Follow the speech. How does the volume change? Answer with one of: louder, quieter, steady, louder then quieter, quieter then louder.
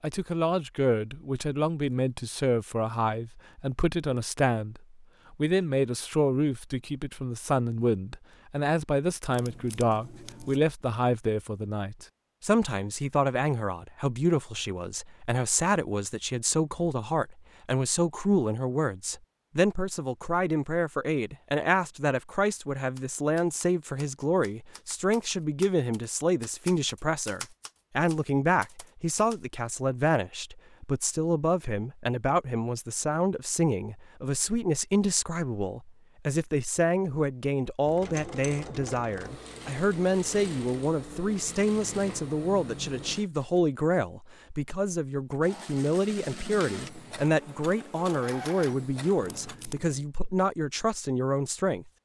steady.